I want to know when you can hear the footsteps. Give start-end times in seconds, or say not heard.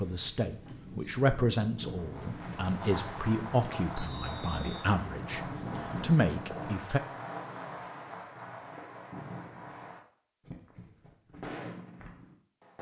not heard.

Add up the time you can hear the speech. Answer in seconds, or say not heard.
7 s.